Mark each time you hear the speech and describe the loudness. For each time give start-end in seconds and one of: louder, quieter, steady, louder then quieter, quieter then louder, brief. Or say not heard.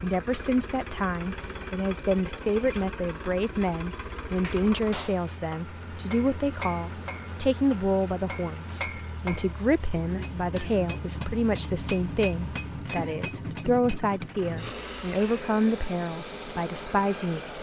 0.0-17.5 steady.